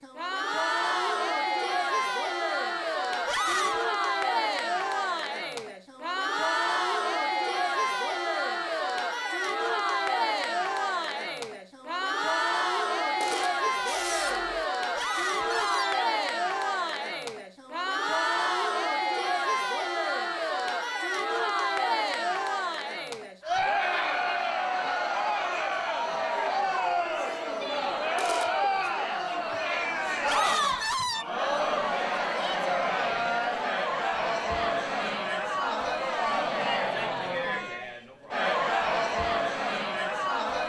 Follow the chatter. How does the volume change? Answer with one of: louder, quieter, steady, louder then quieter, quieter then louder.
steady.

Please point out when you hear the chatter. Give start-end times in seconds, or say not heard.
0.0-40.6.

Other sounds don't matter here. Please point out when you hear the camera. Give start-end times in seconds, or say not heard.
13.2-14.7, 28.1-28.6.